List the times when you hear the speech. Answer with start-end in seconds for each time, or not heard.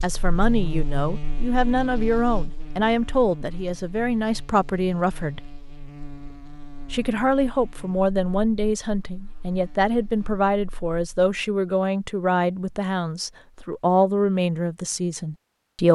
0.0-5.5, 6.9-15.8.